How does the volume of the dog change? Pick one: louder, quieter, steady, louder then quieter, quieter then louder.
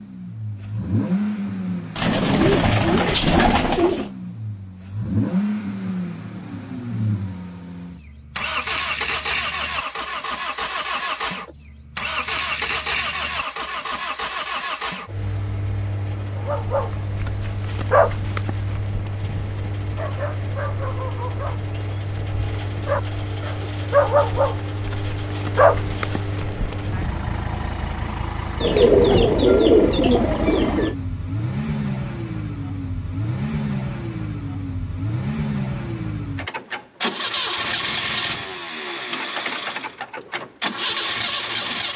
quieter then louder.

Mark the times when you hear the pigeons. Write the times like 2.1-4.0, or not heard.
1.9-4.0, 28.6-30.9.